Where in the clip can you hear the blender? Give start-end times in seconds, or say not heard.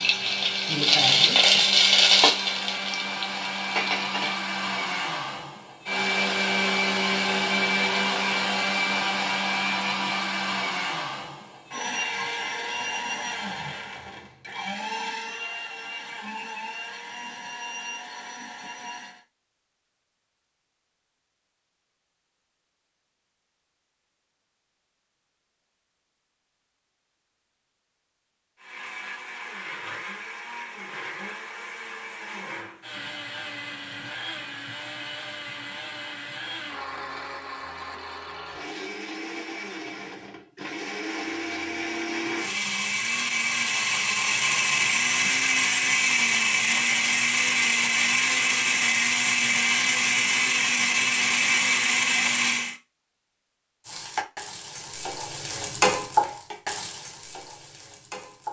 0.0-19.2, 28.6-52.8.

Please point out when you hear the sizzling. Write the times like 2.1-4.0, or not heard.
0.0-4.4, 53.8-58.4.